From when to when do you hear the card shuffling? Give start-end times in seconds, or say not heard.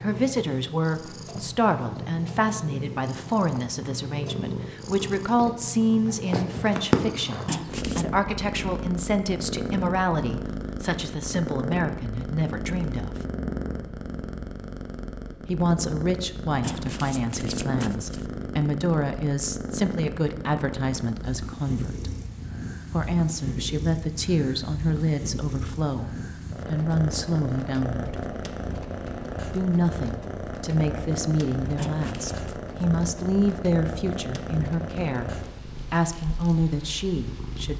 7.5-8.1, 16.6-18.2, 31.8-32.5.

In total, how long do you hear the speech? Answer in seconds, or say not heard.
33 s.